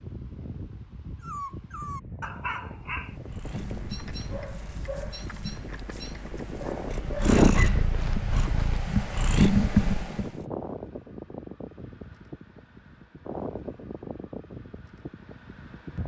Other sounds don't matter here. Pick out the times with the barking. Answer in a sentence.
You can hear the barking from 1.2 to 7.8 s.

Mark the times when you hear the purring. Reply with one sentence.
The purring can be heard from 2.9 to 10.2 s.